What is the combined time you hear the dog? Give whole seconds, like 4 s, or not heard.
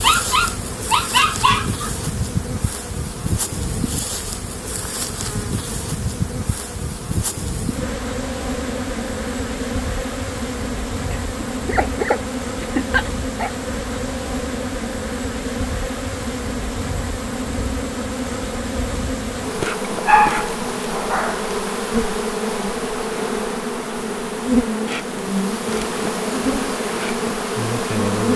6 s.